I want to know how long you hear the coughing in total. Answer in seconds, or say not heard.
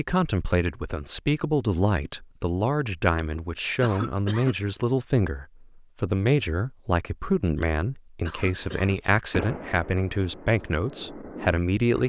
3 s.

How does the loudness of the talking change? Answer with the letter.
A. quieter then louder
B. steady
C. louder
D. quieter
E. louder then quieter
B.